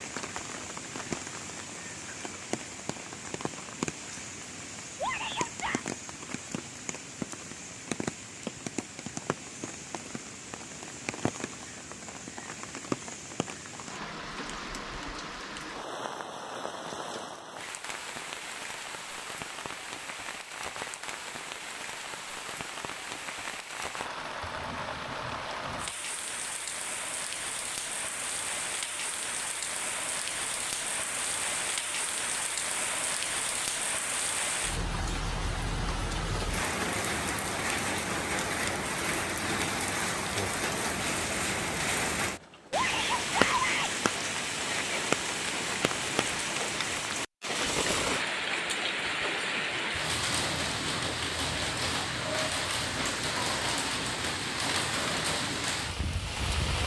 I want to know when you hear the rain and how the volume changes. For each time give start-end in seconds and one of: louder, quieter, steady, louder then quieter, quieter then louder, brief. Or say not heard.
0.0-56.8 louder.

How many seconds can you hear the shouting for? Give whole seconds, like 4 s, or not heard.
2 s.